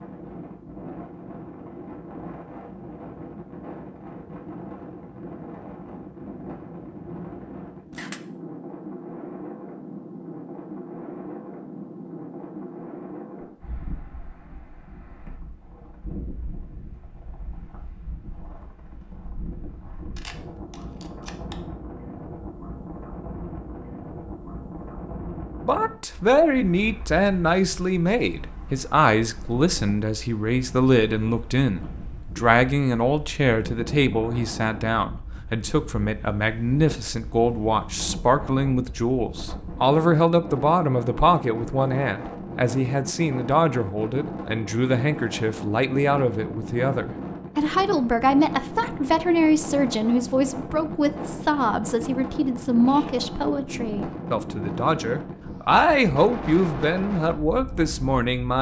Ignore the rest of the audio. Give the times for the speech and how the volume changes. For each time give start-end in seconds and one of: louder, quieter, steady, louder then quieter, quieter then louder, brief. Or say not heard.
25.6-58.5 steady.